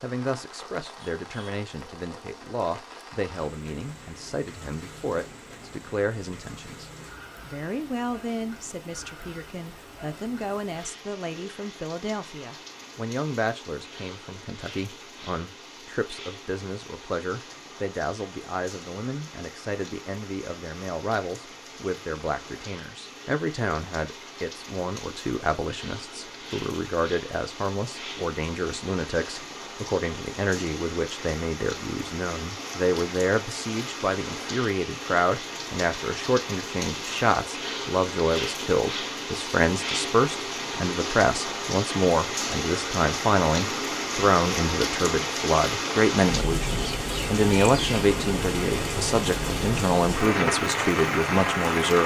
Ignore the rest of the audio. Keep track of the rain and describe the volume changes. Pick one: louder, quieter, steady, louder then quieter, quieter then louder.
louder.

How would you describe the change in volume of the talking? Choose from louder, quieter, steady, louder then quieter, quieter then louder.
louder.